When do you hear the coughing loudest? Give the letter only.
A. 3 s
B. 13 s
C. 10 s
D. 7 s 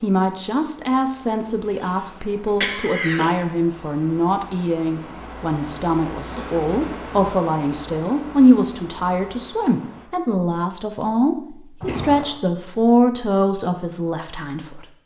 A.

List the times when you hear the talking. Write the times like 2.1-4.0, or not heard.
0.0-14.8.